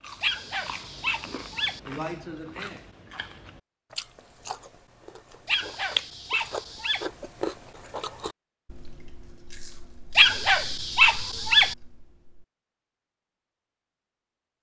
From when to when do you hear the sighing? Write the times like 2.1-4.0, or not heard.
1.9-2.9.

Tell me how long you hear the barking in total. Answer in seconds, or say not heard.
5 s.